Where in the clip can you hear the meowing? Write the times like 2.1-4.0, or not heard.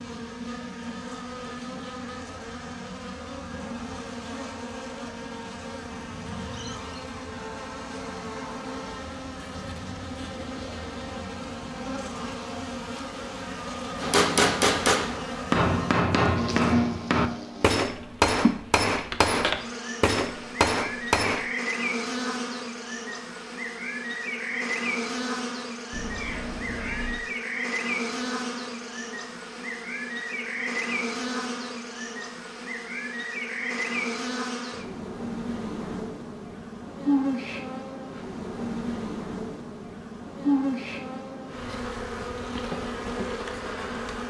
25.9-27.2.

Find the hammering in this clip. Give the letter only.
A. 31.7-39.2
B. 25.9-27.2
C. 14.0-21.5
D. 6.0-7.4
C.